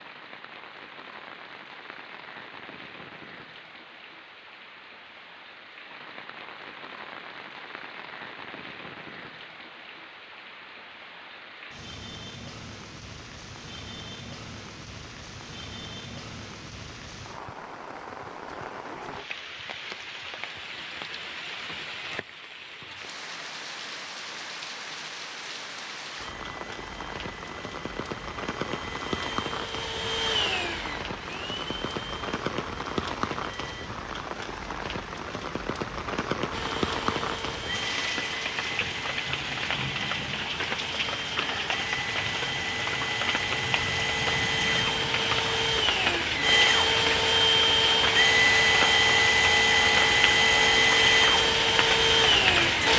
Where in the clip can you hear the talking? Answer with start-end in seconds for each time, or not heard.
not heard.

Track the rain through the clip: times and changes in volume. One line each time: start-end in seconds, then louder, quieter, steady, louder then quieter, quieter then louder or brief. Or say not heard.
0.0-52.9 louder.